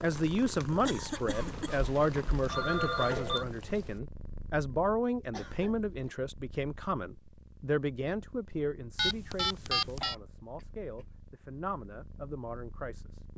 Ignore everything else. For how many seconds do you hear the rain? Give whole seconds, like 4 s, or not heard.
not heard.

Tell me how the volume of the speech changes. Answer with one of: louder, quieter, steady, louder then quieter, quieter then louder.
quieter.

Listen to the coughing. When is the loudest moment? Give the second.
1 s.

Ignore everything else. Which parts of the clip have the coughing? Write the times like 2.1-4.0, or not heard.
0.8-1.8, 5.3-6.2, 10.0-11.1.